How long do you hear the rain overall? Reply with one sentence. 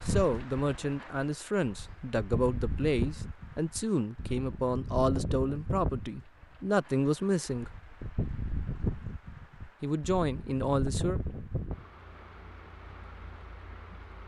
You can hear the rain for 14 seconds altogether.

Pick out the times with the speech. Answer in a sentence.
You can hear the speech from 0.1 to 7.7 s and from 9.8 to 11.2 s.